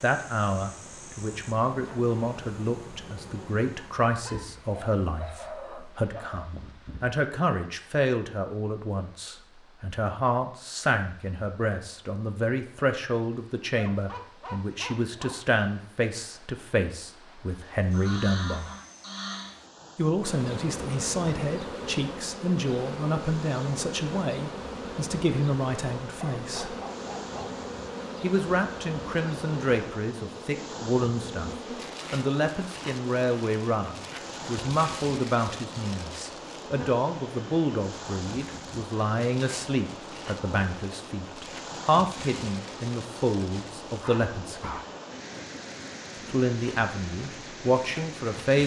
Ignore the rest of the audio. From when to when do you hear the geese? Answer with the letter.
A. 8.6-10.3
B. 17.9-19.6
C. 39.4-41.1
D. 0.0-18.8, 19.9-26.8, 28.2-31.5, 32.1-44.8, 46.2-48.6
B.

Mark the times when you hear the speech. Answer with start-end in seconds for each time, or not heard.
0.0-18.8, 19.9-26.8, 28.2-31.5, 32.1-44.8, 46.2-48.6.